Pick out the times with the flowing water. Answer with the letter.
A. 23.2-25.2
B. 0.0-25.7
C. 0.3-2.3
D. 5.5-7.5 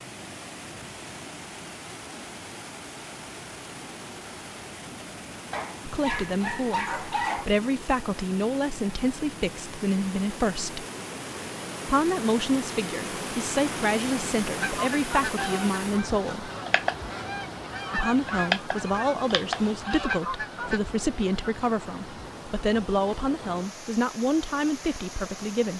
B.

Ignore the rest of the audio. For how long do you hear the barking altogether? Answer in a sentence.
The barking can be heard for 2 seconds in total.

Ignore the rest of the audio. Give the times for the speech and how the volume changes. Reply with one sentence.
You can hear the speech from 5.8 to 10.8 s, at a steady volume; from 11.8 to 16.5 s, at a steady volume; and from 17.9 to 25.7 s, at a steady volume.